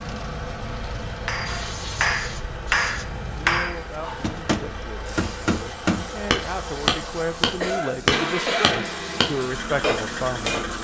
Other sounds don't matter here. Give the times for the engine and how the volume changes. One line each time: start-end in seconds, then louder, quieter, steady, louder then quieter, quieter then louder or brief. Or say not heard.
0.0-10.7 louder.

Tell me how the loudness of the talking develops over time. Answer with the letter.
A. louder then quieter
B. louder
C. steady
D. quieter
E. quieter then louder
B.